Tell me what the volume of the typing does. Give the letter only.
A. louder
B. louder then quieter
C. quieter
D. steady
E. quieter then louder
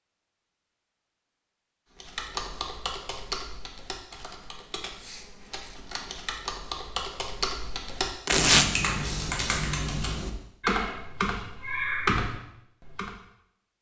A.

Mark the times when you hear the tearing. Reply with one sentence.
The tearing can be heard from 8.2 to 8.7 s.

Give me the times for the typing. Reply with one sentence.
You can hear the typing from 2.0 to 13.2 s.